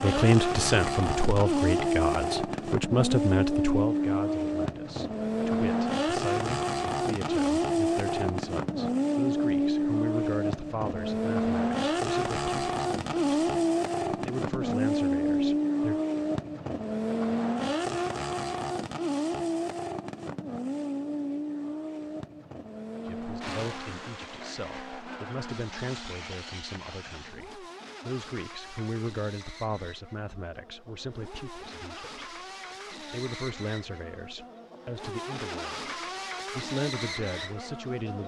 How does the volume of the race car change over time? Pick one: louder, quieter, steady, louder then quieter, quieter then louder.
quieter.